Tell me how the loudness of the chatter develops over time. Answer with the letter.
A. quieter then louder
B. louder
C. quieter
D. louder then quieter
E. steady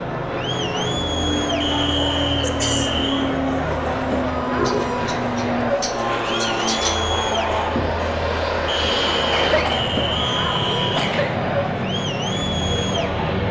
E.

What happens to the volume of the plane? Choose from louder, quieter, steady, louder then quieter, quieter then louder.
steady.